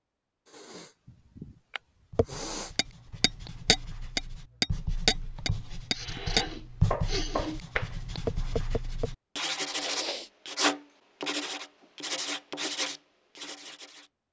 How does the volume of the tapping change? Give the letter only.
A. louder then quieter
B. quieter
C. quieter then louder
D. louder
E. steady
A.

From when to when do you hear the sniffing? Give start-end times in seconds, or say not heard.
0.5-2.8, 5.9-7.6, 9.7-10.3.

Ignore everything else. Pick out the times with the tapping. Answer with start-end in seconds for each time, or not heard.
2.1-9.1.